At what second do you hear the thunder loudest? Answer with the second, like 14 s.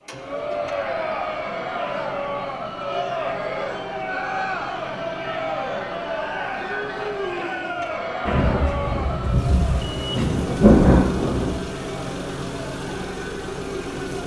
11 s.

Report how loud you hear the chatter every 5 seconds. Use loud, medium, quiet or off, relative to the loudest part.
loud, loud, medium.